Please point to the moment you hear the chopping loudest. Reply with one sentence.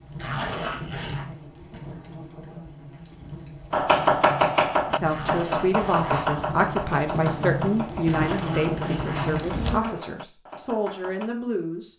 The volume of the chopping peaks at 4 seconds.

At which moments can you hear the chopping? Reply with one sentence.
The chopping can be heard from 3.7 to 11.3 s.